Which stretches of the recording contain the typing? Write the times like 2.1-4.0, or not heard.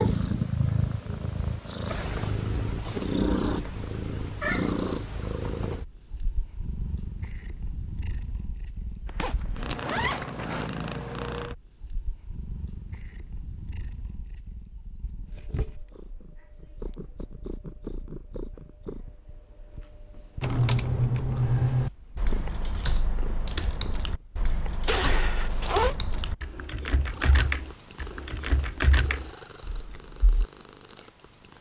20.4-30.4.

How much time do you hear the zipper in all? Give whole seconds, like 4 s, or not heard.
3 s.